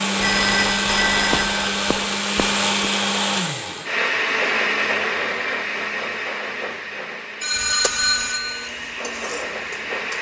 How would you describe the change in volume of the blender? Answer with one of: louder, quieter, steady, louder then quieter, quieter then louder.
quieter.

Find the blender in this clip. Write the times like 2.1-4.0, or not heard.
0.0-10.1.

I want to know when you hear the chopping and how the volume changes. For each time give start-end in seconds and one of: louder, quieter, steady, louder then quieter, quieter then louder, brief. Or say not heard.
not heard.